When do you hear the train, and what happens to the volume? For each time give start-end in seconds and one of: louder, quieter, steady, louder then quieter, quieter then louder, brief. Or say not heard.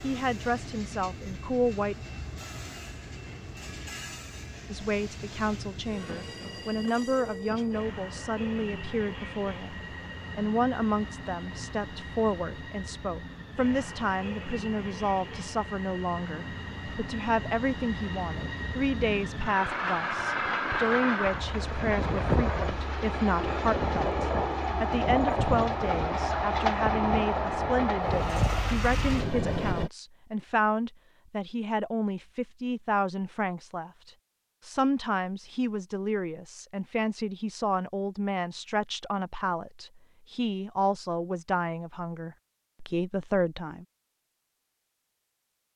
0.0-29.9 louder.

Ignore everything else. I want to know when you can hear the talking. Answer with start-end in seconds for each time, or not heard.
0.0-1.9, 4.7-43.9.